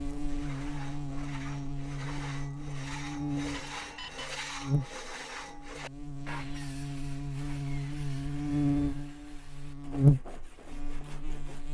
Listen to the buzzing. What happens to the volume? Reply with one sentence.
The loudness of the buzzing goes up.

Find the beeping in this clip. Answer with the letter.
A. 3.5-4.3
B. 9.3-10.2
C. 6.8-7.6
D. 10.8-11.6
A.